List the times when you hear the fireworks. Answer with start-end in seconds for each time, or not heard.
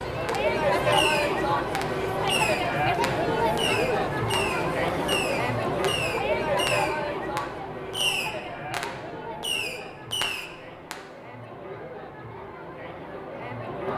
0.2-11.1.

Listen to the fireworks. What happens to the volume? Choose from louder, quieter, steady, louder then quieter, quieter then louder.
steady.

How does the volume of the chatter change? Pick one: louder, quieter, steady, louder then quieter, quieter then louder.
quieter.